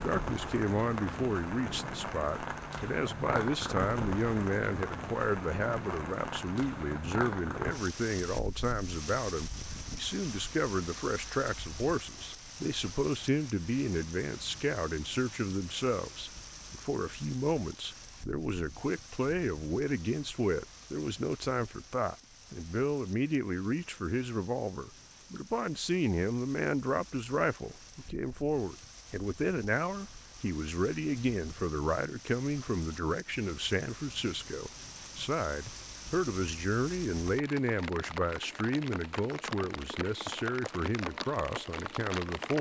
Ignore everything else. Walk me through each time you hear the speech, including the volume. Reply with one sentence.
You can hear the speech from 0.0 to 42.5 s, at a steady volume.